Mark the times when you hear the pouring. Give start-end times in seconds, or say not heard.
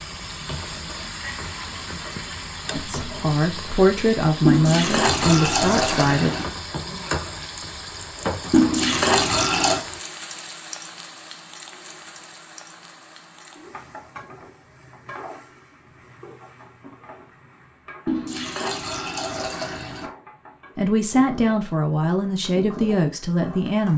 4.5-6.5, 8.5-9.8, 18.1-20.1.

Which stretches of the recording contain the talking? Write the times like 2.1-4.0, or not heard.
2.7-6.3, 20.8-23.9.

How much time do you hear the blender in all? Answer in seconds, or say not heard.
not heard.